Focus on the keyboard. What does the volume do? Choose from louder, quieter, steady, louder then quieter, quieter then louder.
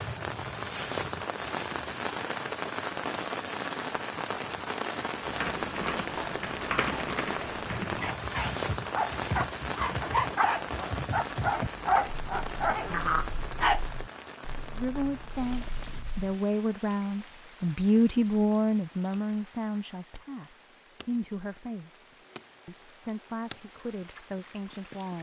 quieter.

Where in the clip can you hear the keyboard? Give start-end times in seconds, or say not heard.
5.2-16.4.